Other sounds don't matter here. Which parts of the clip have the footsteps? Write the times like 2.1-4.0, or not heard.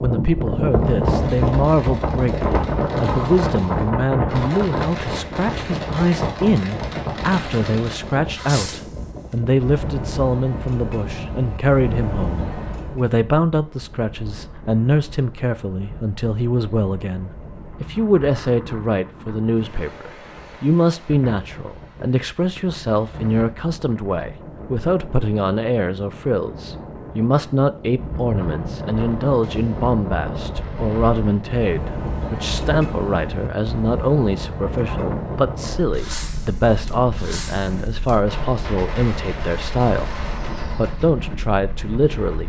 not heard.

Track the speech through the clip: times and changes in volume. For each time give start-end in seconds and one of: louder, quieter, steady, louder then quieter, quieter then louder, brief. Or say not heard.
0.0-42.4 steady.